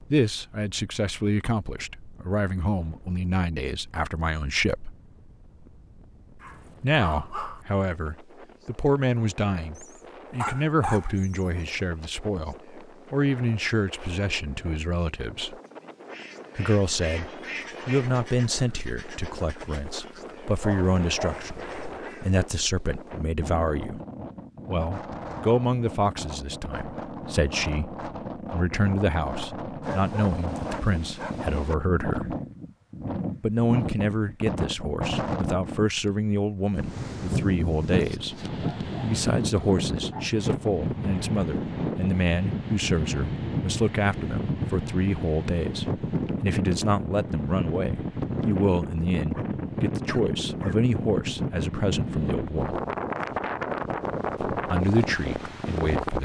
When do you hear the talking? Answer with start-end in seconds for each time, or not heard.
0.0-5.0, 6.8-15.6, 16.6-24.0, 24.6-32.4, 33.4-52.8, 54.5-56.2.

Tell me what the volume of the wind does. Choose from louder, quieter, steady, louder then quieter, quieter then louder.
louder.